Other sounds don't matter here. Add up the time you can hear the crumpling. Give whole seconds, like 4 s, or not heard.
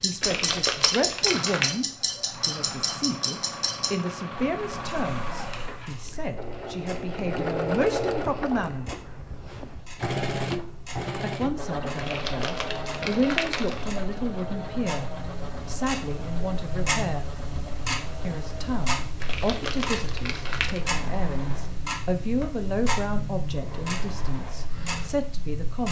5 s.